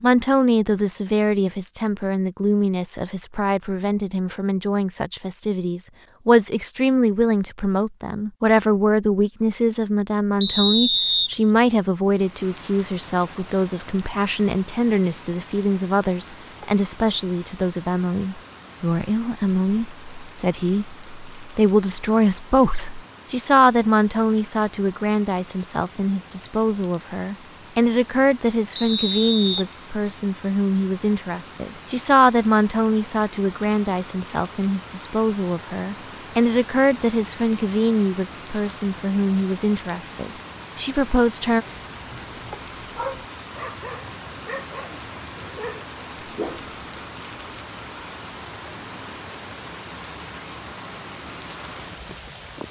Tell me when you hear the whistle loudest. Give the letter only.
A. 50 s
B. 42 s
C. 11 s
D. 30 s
C.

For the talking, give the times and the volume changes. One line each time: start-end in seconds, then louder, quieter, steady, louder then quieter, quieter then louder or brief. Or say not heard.
0.0-41.6 steady.